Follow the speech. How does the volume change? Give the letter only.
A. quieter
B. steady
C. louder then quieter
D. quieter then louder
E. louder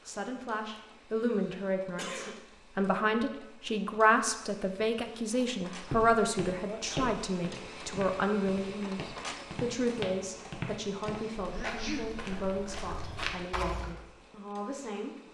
A.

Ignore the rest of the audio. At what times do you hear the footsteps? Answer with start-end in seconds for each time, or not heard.
5.8-13.9.